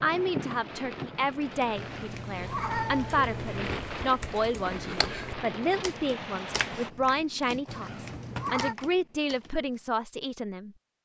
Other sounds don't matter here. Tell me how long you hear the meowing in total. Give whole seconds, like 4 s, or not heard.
3 s.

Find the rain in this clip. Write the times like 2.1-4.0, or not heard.
0.0-6.9.